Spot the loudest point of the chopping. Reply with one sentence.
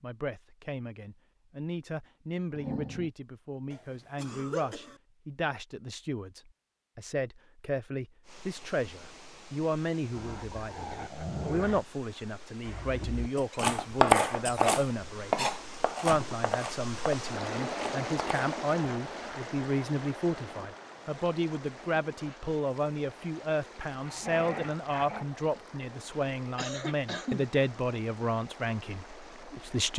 The volume of the chopping peaks at 14 seconds.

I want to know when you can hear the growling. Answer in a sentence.
You can hear the growling from 2.5 to 3.1 s, from 10.2 to 11.8 s and from 24.0 to 25.2 s.